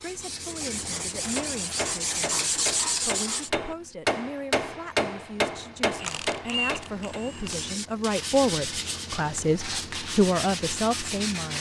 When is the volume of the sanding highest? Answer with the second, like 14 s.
3 s.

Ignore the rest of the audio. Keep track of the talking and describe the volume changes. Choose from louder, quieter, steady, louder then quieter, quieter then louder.
louder.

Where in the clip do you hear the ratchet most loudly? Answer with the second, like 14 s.
7 s.